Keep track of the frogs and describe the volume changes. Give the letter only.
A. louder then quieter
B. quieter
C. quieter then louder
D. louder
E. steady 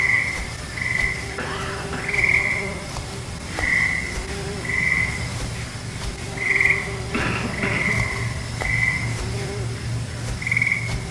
E.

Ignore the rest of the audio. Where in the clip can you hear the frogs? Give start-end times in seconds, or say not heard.
0.0-11.0.